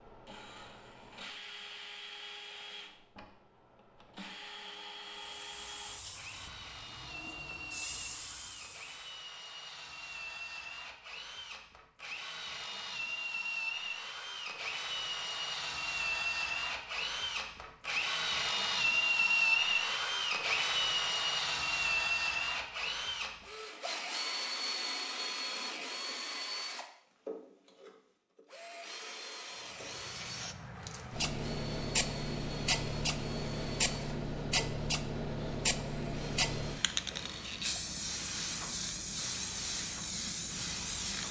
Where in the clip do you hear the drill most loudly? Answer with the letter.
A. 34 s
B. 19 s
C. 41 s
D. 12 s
B.